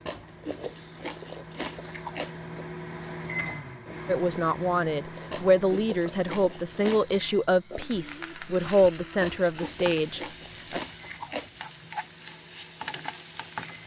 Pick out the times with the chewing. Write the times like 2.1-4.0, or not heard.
0.1-2.4, 5.3-7.2, 9.2-11.7.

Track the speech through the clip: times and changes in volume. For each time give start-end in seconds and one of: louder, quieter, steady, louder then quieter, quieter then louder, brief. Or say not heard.
4.0-10.8 steady.